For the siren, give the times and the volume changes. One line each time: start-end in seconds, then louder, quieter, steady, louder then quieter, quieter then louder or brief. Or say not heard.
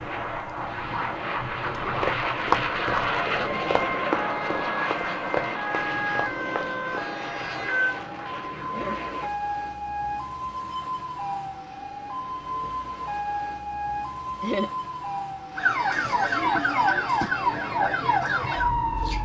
0.0-19.2 louder.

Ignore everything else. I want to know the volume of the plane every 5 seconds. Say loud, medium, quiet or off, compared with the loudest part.
loud, medium, off, off.